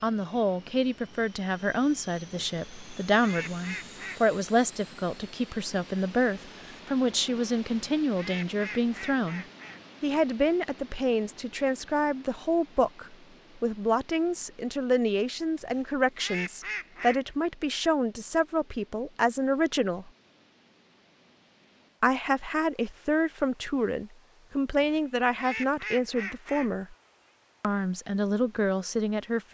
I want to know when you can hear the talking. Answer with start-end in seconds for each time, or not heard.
0.0-20.1, 22.0-26.9, 27.6-29.4.